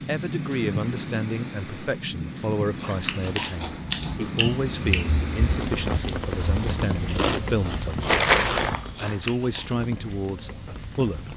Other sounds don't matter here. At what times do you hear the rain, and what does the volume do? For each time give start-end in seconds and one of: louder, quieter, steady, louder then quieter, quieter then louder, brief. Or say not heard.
0.0-11.3 quieter.